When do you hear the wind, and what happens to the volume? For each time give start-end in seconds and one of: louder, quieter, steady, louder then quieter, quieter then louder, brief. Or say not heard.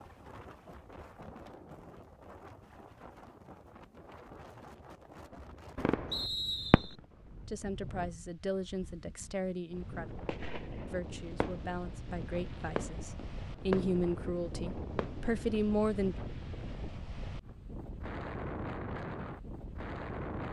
0.0-20.4 louder.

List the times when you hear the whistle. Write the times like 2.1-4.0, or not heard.
6.1-7.0.